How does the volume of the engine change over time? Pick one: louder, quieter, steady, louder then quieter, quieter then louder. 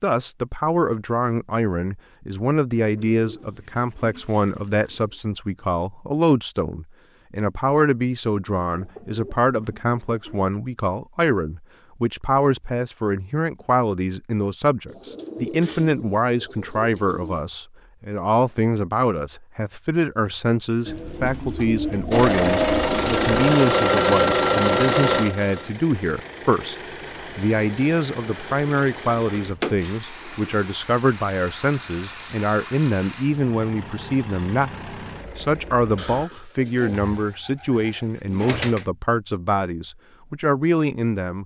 quieter.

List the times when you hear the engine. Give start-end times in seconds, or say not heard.
22.1-36.2.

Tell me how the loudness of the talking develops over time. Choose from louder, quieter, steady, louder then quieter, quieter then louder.
steady.